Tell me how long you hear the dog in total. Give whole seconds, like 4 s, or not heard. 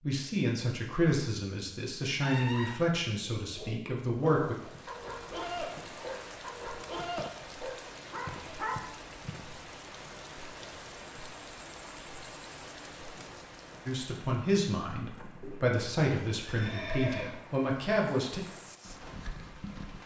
5 s.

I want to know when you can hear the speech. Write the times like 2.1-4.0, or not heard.
0.0-4.5, 13.8-18.4.